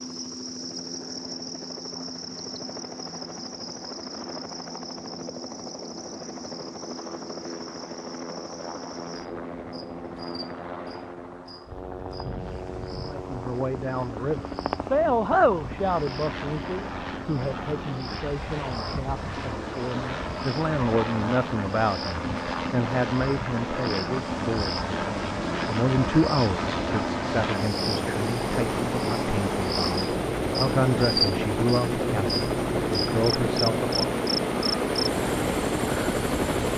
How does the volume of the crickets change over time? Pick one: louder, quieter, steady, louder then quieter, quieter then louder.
quieter then louder.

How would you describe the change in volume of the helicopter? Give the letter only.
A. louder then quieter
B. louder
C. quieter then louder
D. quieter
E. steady
B.